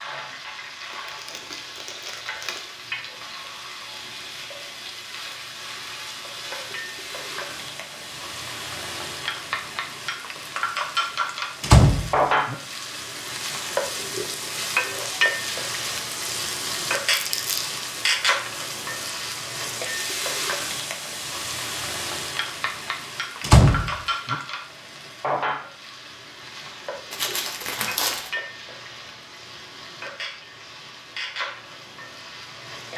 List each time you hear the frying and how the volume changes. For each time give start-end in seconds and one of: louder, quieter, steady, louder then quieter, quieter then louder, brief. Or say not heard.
0.0-32.9 louder then quieter.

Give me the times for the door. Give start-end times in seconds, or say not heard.
11.6-12.6, 23.4-24.4.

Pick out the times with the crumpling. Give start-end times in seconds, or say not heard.
0.9-2.6, 17.1-17.7, 27.1-28.3.